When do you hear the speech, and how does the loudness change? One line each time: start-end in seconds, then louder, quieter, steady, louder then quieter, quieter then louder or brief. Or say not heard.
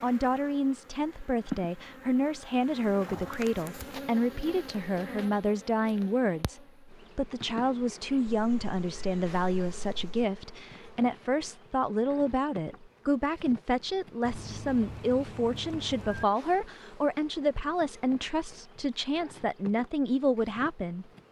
0.0-21.1 steady.